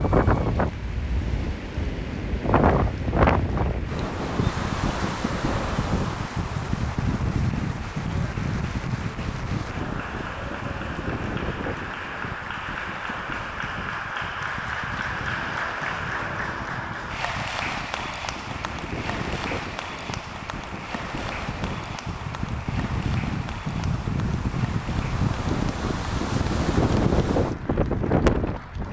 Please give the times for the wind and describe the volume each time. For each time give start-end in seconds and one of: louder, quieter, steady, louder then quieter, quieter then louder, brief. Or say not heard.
0.0-28.8 quieter then louder.